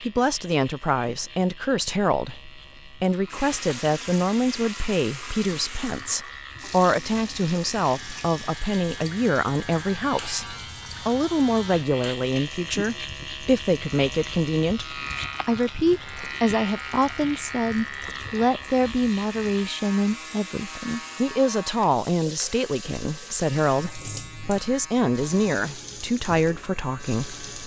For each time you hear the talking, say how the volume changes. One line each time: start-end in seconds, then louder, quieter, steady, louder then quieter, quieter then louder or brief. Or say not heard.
0.0-27.4 steady.